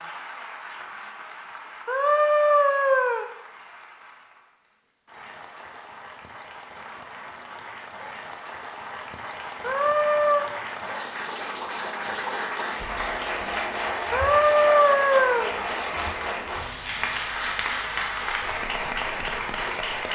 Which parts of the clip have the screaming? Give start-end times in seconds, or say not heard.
1.9-3.2, 9.6-10.4, 14.1-15.5.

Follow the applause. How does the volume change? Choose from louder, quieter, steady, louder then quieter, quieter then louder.
louder.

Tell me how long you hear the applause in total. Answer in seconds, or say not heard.
20 s.